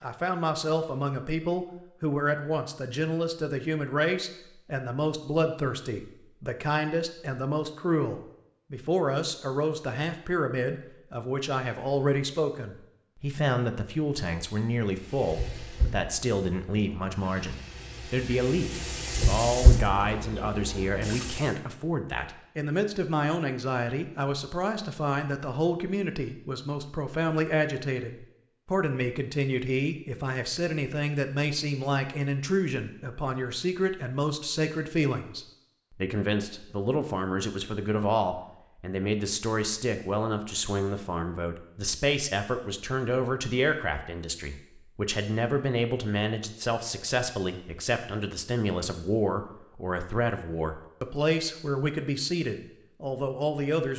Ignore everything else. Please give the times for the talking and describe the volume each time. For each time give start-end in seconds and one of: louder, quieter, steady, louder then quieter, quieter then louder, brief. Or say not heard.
0.0-53.9 steady.